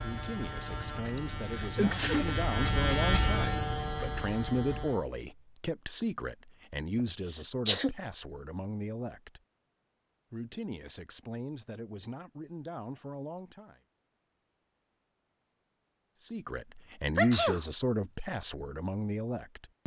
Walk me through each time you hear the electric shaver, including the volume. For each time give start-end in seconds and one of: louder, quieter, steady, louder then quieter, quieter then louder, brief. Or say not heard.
0.0-5.1 louder then quieter.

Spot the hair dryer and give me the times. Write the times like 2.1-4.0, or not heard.
not heard.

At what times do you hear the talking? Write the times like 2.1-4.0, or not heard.
0.0-9.4, 10.3-13.8, 16.2-19.8.